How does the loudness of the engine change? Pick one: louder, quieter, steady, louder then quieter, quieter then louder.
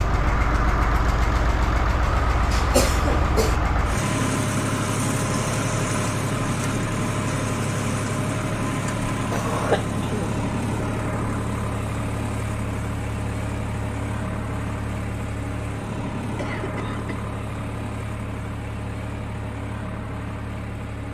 quieter.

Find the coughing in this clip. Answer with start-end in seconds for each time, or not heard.
2.0-3.6, 9.3-10.3, 16.3-17.1.